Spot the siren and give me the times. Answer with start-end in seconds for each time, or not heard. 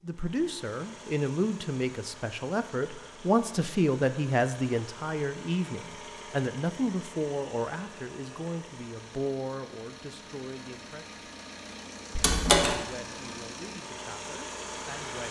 not heard.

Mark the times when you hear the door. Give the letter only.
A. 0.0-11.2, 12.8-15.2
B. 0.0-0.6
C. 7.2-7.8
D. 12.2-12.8
D.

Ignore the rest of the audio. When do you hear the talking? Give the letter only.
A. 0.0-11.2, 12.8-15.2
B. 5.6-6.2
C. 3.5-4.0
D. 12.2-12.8
A.